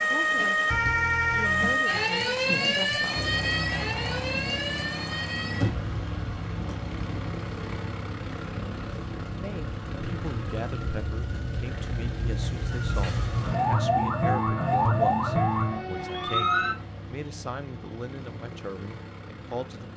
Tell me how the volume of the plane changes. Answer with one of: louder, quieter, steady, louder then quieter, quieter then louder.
quieter.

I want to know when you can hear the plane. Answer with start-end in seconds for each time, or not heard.
3.1-19.9.